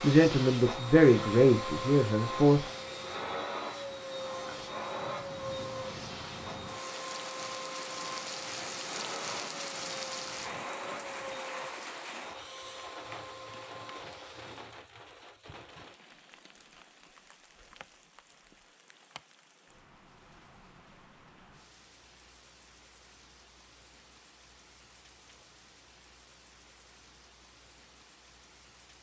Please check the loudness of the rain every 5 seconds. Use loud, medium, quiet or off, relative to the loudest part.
medium, loud, loud, quiet, quiet, quiet.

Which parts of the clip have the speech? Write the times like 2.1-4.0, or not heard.
0.0-2.6.